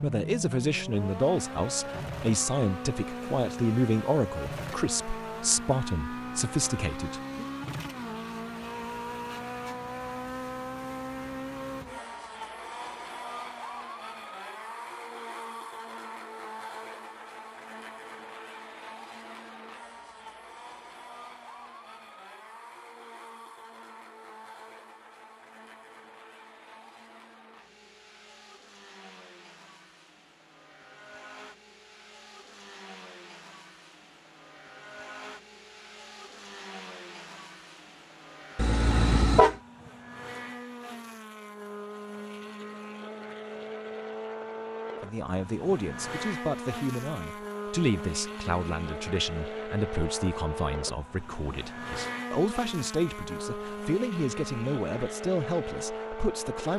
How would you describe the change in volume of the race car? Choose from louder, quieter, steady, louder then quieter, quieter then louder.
quieter then louder.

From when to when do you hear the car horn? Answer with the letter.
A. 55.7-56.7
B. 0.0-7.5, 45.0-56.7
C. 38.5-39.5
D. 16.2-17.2
C.